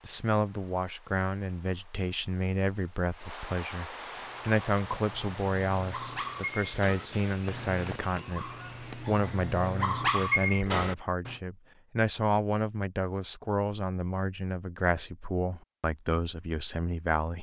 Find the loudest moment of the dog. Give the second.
10 s.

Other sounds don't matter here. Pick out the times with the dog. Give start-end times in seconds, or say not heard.
4.2-11.3.